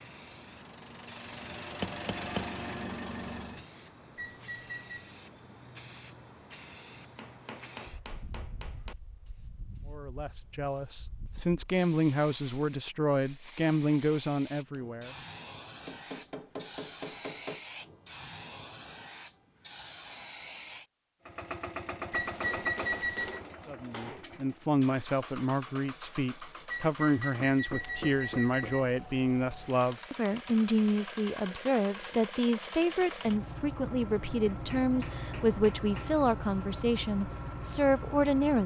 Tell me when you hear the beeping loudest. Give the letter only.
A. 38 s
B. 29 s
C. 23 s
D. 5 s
C.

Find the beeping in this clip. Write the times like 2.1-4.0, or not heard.
4.2-5.1, 22.1-23.4, 26.7-28.9.